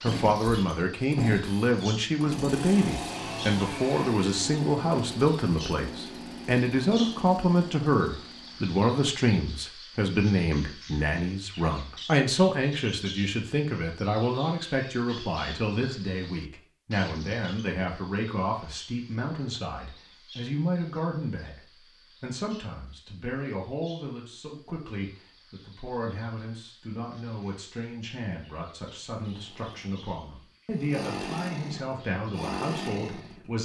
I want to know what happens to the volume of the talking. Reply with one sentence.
The volume of the talking goes down.